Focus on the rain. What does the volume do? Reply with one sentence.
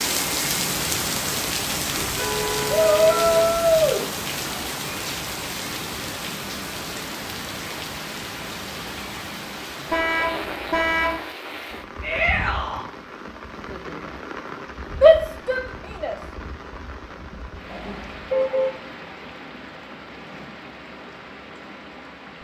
The loudness of the rain goes down.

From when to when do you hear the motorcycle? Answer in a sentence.
You can't hear the motorcycle here.